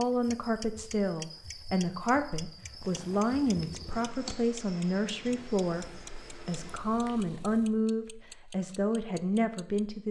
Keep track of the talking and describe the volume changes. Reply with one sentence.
The volume of the talking stays about the same.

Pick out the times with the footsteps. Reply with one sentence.
You can't hear the footsteps here.